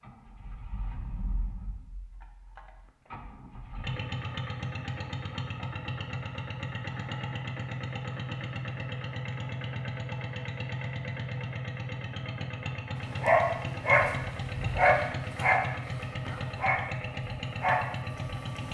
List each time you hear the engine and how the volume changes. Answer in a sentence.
The engine can be heard from 0.0 to 18.6 s, getting louder.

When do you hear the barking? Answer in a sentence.
You can hear the barking from 13.2 to 18.6 s.